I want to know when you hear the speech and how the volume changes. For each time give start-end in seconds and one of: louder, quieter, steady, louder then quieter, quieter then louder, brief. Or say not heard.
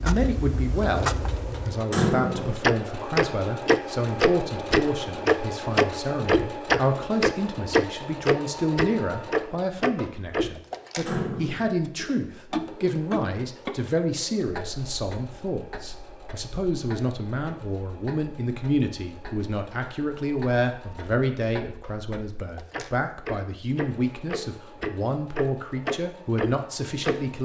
0.0-27.4 steady.